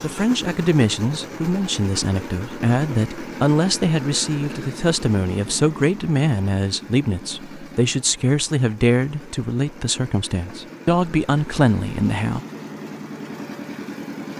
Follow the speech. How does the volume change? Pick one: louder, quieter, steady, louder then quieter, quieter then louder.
steady.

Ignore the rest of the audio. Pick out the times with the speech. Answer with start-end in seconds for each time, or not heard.
0.0-12.4.